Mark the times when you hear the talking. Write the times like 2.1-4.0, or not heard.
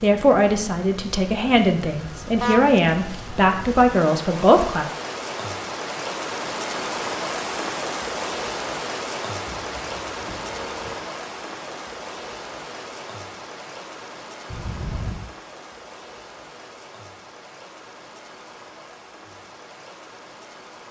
0.0-4.8.